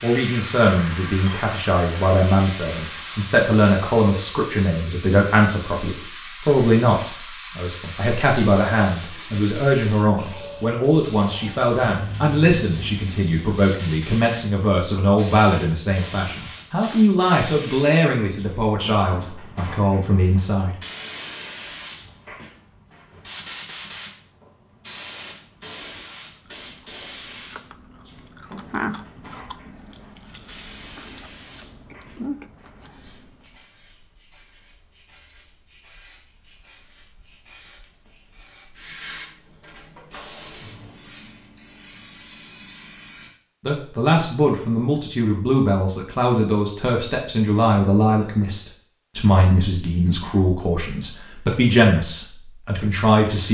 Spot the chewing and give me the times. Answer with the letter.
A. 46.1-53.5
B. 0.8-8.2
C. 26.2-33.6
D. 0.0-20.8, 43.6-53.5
C.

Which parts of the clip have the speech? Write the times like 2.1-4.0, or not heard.
0.0-20.8, 43.6-53.5.